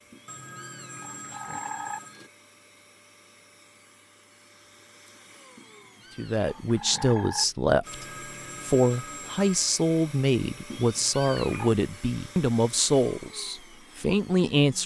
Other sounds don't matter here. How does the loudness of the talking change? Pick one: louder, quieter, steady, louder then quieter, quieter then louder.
steady.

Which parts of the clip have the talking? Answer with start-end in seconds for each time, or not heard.
6.2-14.8.